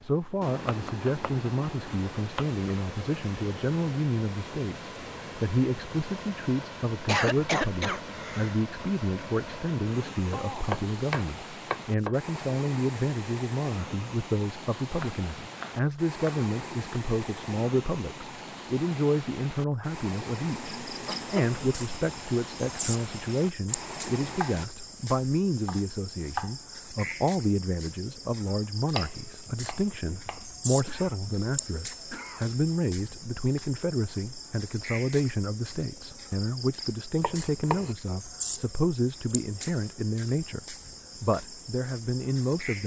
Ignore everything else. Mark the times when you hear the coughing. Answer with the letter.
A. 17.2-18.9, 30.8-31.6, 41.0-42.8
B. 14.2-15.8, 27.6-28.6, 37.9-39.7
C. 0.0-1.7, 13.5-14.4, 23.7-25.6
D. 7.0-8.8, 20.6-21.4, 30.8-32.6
D.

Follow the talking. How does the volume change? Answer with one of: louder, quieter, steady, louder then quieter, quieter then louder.
steady.